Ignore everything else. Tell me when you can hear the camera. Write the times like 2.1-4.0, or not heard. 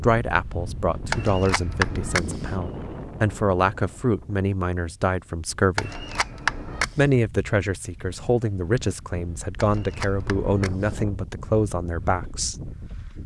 1.1-2.5, 5.8-7.0, 9.6-11.0.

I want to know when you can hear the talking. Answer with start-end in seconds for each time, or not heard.
0.0-5.9, 7.0-12.6.